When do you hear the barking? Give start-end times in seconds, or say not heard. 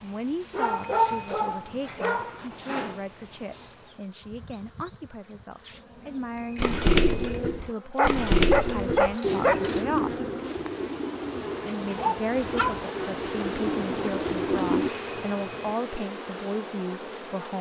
0.5-3.0, 8.0-9.8, 11.9-12.8.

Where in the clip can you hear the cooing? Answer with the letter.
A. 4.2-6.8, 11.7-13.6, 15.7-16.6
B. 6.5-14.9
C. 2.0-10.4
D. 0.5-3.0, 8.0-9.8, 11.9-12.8
B.